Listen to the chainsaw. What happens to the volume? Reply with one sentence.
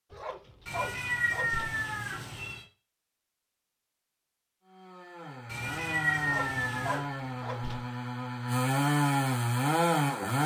The volume of the chainsaw goes up.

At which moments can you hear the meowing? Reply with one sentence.
You can hear the meowing from 0.7 to 2.6 s and from 5.5 to 7.0 s.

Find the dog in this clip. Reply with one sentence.
You can hear the dog from 0.1 to 1.8 s and from 6.2 to 7.9 s.